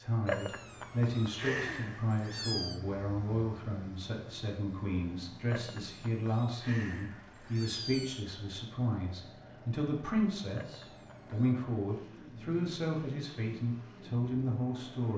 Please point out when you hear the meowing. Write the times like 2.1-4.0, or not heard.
0.2-2.8, 5.5-8.2, 10.6-11.6.